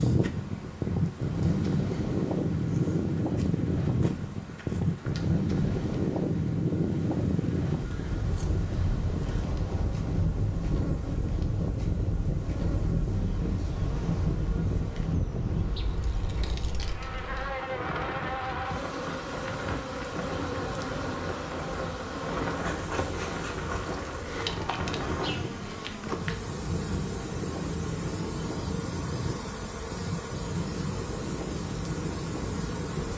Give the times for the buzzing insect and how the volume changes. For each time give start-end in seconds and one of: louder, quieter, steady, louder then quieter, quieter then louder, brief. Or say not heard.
0.0-33.1 louder.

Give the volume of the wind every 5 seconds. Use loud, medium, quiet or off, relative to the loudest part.
loud, loud, loud, medium, medium, medium, medium.